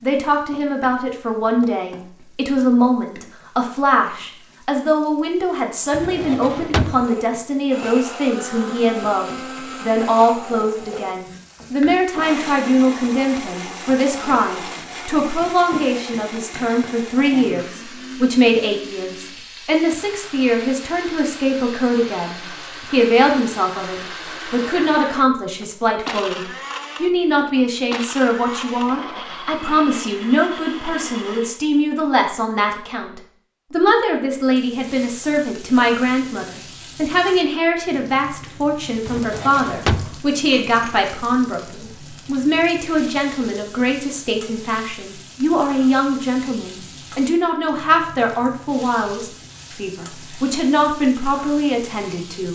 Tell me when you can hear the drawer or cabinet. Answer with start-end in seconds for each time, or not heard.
5.9-7.0, 39.0-40.2.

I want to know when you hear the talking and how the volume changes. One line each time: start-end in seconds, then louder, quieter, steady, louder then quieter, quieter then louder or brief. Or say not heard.
0.0-26.4 steady
27.0-52.4 steady.